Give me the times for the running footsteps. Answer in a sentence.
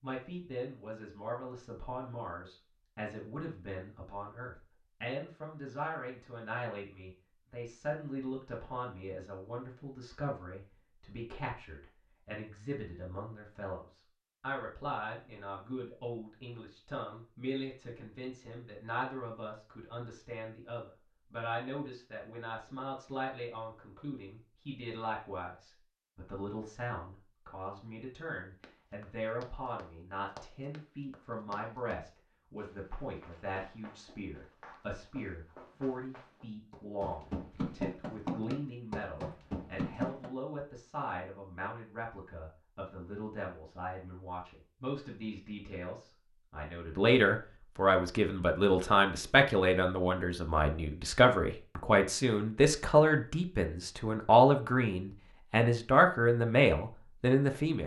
You can hear the running footsteps from 28.6 to 40.3 s.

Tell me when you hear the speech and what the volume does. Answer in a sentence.
You can hear the speech from 0.0 to 57.8 s, getting louder.